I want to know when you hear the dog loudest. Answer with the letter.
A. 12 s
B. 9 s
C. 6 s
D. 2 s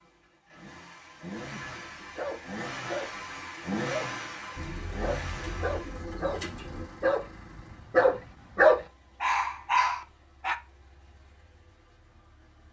B.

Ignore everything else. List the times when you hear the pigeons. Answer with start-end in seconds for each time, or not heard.
4.5-6.8.